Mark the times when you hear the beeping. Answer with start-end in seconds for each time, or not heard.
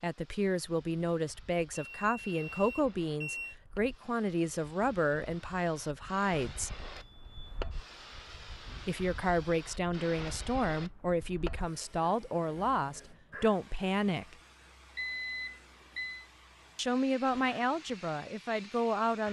1.8-3.5, 7.0-7.7, 14.9-16.2.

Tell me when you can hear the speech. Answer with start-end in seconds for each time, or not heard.
0.0-6.8, 8.8-14.3, 16.8-19.2.